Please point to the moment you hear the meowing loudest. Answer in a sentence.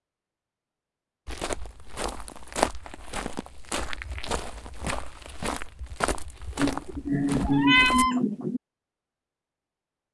The loudest moment of the meowing is at 8 seconds.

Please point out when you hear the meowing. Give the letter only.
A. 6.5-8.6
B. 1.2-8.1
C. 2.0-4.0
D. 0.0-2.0
A.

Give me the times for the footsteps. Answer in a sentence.
You can hear the footsteps from 1.2 to 8.1 s.